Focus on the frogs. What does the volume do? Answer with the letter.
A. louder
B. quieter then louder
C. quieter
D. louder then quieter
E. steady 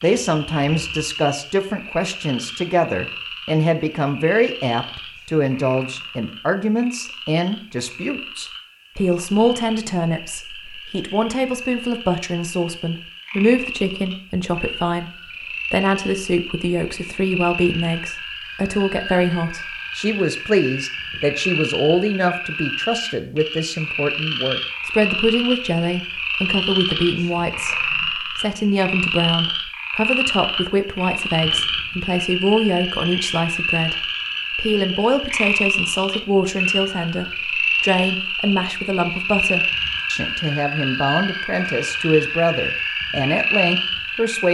A.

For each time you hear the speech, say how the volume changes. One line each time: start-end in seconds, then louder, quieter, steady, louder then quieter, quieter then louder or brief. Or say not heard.
0.0-44.4 steady.